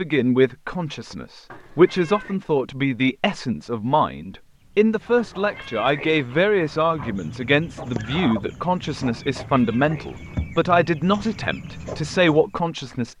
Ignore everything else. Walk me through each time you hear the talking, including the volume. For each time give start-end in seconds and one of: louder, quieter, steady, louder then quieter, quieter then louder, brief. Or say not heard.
0.0-13.1 steady.